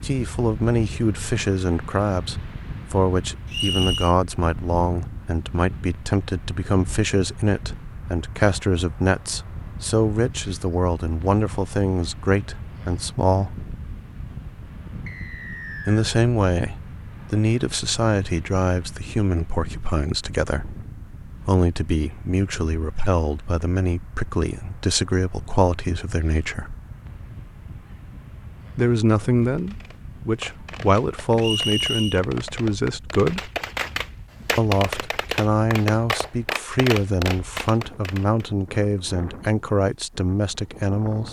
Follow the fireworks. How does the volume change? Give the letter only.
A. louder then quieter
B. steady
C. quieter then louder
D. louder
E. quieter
D.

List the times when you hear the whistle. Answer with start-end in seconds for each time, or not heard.
3.5-4.2, 15.1-16.1, 31.4-32.2.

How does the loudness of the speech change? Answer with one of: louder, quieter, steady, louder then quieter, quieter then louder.
steady.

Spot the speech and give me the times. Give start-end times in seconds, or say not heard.
0.0-13.6, 15.8-26.8, 28.8-33.5, 34.5-41.2.